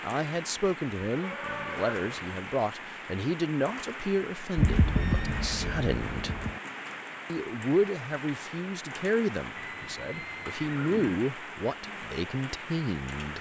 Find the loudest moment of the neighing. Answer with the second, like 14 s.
5 s.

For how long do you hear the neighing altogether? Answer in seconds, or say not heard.
5 s.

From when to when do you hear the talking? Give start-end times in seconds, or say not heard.
0.0-6.3, 7.3-13.3.